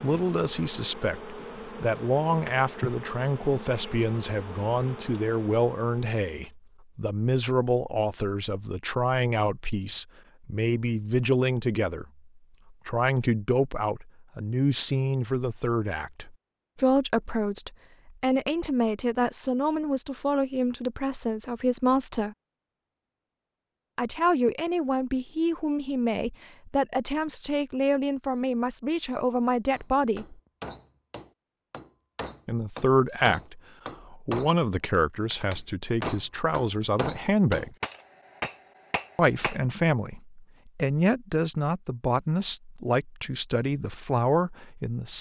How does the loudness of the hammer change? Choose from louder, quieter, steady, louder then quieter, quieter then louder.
louder.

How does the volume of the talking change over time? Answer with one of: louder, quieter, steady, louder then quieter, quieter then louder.
steady.